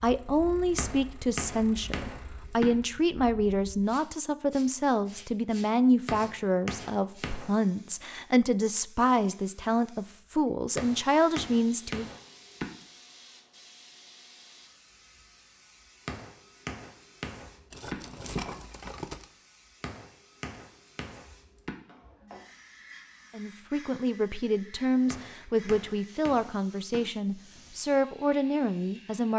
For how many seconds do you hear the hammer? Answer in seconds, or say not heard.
11 s.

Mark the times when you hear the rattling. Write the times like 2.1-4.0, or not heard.
17.7-19.2.